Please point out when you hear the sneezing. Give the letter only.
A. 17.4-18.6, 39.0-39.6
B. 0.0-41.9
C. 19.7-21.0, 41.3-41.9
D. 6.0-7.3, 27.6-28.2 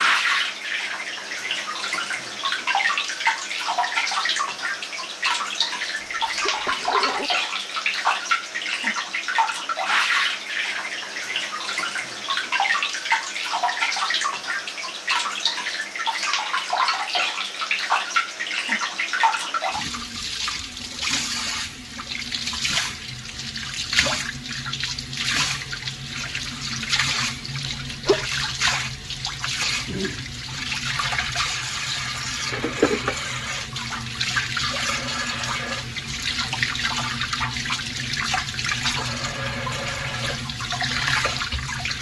D.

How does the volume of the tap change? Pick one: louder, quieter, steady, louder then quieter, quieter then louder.
steady.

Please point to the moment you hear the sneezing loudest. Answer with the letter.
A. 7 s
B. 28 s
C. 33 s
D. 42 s
B.